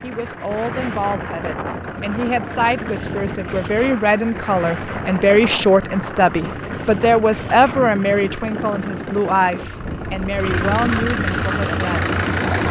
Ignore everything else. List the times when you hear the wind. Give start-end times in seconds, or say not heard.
0.0-12.6.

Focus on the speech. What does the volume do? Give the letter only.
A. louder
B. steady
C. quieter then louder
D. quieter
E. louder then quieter
E.